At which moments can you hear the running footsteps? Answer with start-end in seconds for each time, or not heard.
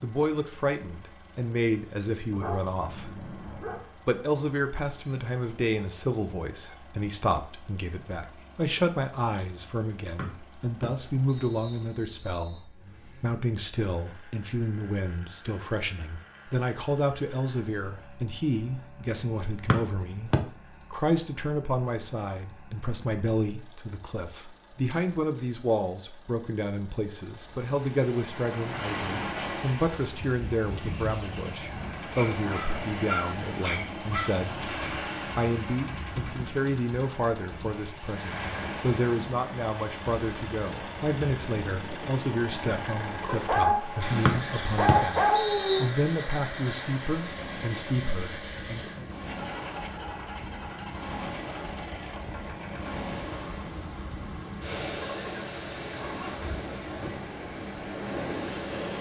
not heard.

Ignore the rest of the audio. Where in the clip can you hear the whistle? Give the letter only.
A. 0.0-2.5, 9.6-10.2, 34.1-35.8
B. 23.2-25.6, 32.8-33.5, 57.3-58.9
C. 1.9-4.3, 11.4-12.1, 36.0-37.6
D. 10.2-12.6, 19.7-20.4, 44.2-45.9
D.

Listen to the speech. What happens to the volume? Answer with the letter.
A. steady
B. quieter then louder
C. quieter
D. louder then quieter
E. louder
A.